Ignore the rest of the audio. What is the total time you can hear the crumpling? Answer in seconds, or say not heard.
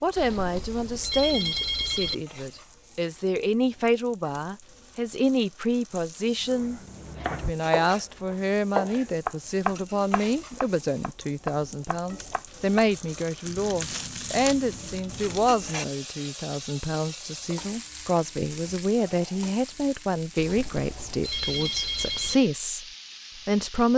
2 s.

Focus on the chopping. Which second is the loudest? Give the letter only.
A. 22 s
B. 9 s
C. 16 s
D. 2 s
B.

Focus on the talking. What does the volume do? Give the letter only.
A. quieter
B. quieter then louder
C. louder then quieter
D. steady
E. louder
D.